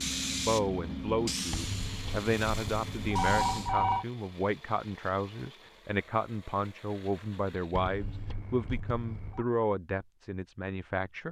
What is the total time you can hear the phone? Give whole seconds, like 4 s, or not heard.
4 s.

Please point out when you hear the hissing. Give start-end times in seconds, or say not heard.
0.0-3.8.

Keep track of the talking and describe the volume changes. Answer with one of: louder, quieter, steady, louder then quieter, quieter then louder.
steady.